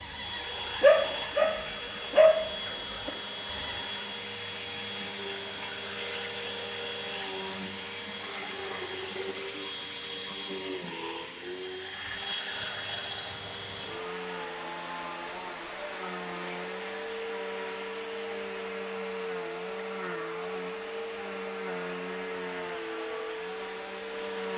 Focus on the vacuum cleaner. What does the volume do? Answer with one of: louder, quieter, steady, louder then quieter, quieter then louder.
steady.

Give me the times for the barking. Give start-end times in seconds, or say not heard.
0.0-3.8.